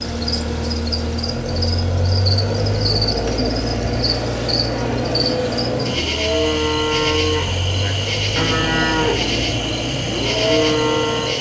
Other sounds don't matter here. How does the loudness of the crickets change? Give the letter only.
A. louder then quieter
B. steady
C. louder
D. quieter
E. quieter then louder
B.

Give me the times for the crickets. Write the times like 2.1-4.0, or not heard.
0.0-11.3.